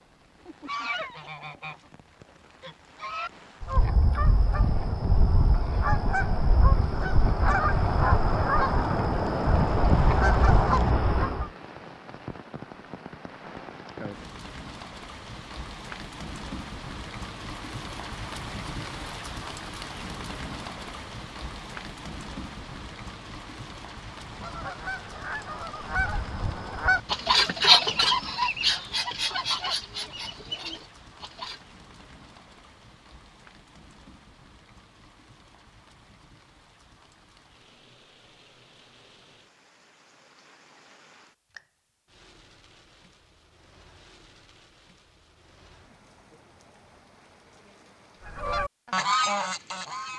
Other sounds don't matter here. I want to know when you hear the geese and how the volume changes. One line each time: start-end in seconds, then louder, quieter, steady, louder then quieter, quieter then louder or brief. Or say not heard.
0.5-11.5 louder
24.2-31.6 louder then quieter
48.2-50.1 brief.